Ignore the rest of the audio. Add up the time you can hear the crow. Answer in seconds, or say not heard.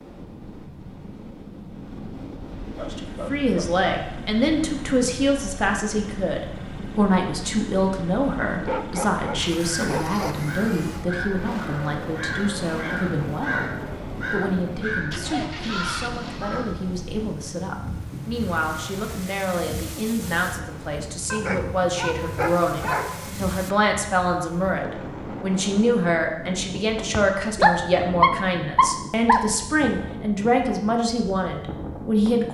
7 s.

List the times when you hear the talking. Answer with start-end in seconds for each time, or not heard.
2.8-32.4.